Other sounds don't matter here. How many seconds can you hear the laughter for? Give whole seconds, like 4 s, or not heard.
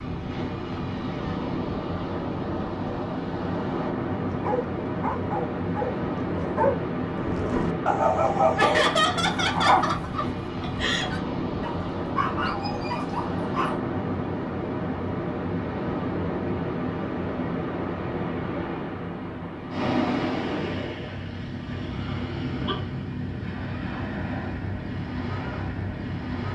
3 s.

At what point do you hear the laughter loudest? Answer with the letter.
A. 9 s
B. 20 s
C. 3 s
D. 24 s
A.